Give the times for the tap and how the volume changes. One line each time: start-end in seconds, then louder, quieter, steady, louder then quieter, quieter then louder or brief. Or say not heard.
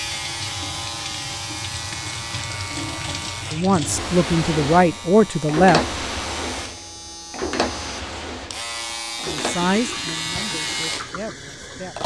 0.0-12.0 louder then quieter.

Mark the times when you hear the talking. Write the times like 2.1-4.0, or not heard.
3.5-5.8, 9.1-12.0.